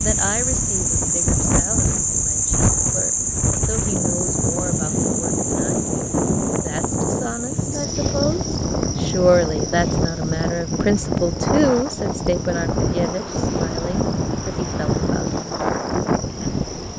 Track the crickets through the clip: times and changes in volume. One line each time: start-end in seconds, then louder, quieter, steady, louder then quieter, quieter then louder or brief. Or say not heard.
0.0-16.9 quieter.